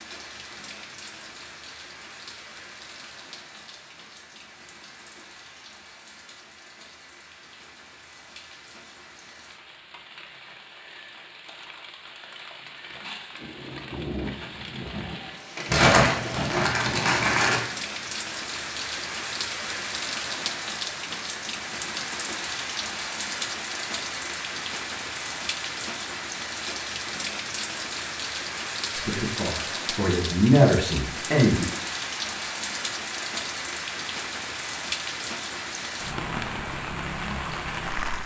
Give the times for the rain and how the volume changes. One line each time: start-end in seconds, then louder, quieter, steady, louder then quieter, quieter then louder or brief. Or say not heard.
0.0-38.2 louder.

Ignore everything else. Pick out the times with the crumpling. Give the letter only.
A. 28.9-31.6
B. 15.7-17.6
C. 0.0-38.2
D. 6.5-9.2
B.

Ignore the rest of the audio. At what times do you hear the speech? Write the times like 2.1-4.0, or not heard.
28.9-31.6.